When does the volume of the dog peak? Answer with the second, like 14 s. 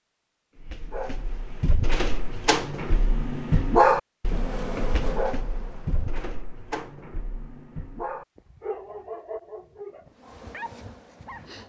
4 s.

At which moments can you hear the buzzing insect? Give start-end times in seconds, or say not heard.
4.2-6.2, 10.1-11.6.